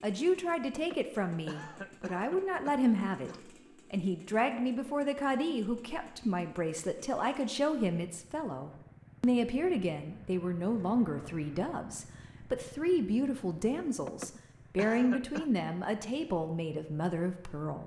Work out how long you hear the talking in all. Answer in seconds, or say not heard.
17 s.